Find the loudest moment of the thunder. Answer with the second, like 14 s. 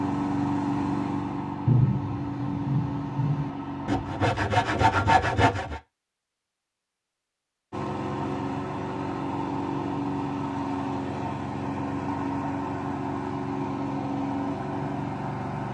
2 s.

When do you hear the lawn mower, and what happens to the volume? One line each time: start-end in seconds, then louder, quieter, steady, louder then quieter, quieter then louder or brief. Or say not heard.
0.0-4.3 quieter
7.7-15.6 steady.